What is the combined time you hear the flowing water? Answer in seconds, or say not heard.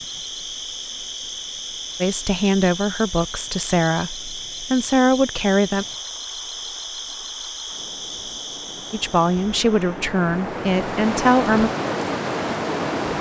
13 s.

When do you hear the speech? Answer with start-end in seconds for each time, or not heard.
2.0-5.8, 8.9-11.7.